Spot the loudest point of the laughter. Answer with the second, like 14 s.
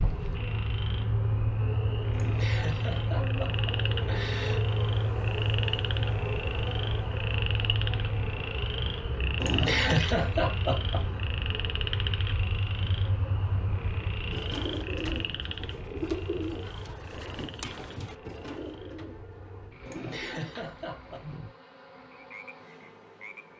10 s.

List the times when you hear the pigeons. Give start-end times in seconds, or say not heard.
14.3-21.4.